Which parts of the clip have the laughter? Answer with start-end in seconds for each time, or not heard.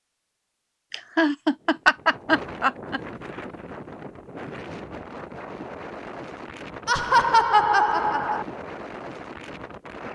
0.9-3.0, 6.8-8.4.